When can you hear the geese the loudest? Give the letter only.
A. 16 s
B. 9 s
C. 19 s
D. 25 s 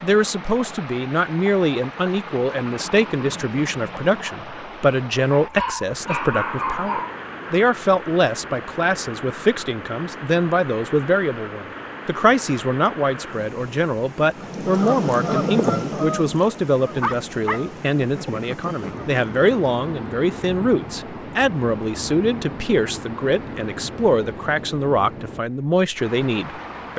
A.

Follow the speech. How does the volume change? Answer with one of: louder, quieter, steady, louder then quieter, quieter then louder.
steady.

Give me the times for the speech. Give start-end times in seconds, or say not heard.
0.0-26.9.